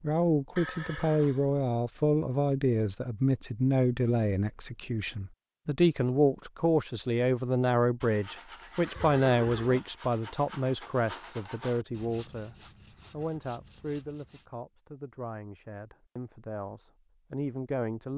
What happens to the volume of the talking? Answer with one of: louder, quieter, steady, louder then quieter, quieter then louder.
quieter.